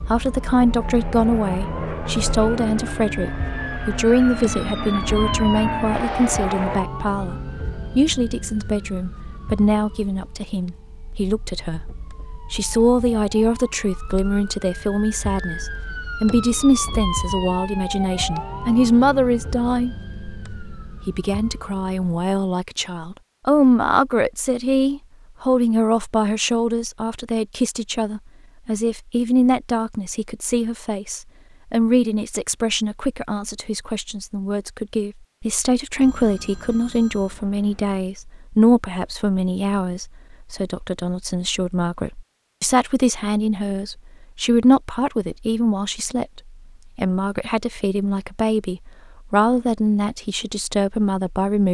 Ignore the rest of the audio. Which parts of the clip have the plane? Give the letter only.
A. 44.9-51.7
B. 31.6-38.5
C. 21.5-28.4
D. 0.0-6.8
D.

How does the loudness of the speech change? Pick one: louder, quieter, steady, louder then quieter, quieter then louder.
steady.